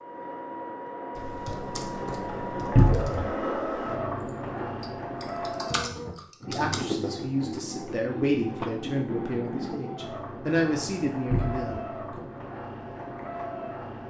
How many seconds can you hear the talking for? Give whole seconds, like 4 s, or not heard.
6 s.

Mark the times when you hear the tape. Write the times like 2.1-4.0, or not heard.
not heard.